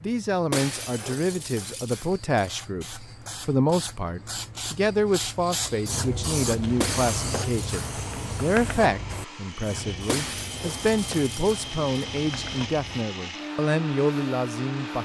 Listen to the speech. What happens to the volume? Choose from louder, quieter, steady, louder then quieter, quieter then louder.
steady.